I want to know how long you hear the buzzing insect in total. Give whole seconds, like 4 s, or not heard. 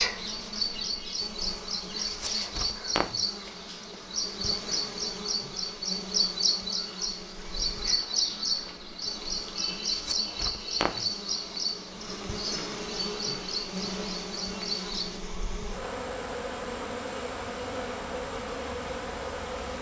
20 s.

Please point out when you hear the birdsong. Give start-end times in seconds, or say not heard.
0.0-15.2.